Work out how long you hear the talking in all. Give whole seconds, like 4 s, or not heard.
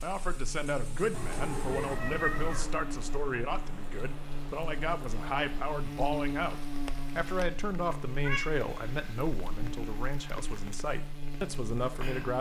12 s.